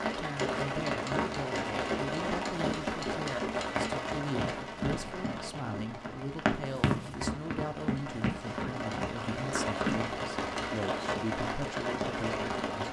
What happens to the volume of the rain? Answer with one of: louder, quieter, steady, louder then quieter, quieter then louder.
quieter then louder.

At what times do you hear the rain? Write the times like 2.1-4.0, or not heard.
0.0-12.8.